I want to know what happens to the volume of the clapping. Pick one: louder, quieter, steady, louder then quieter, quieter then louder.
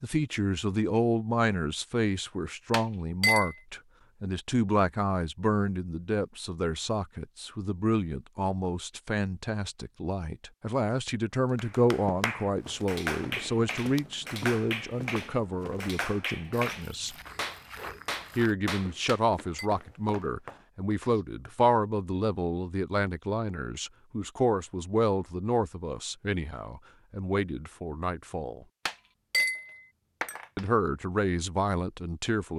steady.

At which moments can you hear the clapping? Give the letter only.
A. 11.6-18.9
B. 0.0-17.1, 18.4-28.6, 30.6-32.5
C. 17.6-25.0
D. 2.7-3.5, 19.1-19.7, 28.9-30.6
A.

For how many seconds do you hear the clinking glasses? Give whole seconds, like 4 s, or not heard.
3 s.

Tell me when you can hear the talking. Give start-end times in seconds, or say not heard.
0.0-17.1, 18.4-28.6, 30.6-32.5.